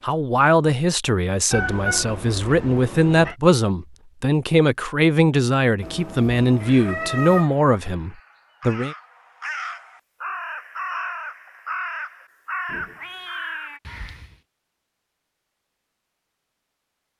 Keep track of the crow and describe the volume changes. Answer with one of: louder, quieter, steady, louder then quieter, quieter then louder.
louder.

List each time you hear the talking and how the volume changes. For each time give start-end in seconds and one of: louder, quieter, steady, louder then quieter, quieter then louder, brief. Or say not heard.
0.0-8.9 steady.